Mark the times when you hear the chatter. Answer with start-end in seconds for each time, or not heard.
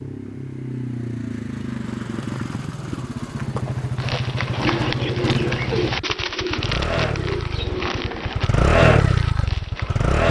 not heard.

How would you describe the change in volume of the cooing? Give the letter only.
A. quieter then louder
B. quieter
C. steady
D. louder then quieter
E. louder
B.